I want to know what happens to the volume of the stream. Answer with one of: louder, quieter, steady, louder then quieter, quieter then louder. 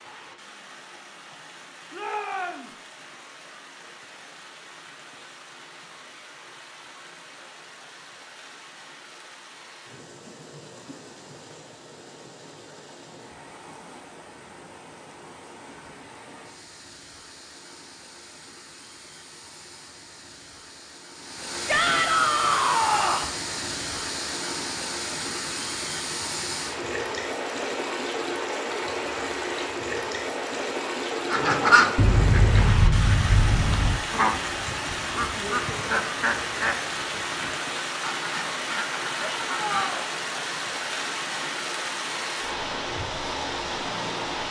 louder.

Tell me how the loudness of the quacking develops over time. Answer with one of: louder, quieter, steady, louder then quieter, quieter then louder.
quieter.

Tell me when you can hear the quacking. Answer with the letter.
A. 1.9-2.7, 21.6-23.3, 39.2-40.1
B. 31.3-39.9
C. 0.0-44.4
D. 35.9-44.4
B.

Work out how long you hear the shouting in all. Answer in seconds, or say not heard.
3 s.